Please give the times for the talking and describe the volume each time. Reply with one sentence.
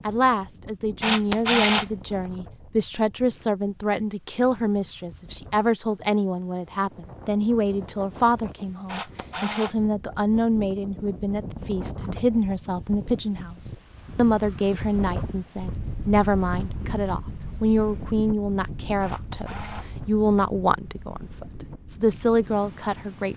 You can hear the talking from 0.1 to 23.3 s, at a steady volume.